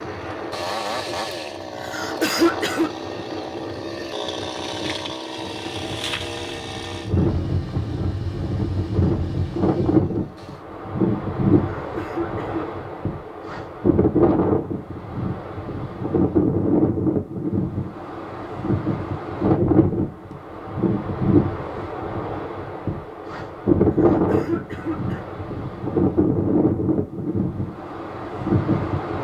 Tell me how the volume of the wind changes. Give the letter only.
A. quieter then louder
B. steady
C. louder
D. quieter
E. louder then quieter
C.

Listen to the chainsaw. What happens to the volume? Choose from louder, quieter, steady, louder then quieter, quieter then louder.
quieter.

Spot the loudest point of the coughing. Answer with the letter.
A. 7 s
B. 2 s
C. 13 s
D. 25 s
B.